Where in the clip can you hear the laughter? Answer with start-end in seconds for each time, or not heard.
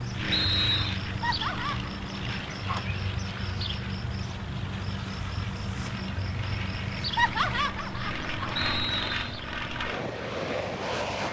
1.2-1.9, 7.2-8.8.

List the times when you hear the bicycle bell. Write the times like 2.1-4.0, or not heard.
not heard.